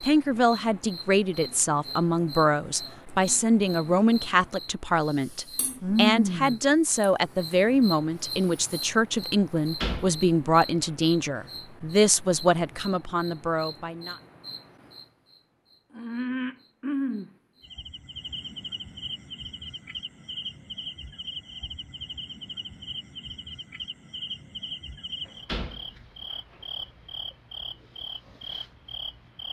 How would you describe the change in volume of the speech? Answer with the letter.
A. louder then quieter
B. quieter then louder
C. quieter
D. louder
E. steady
E.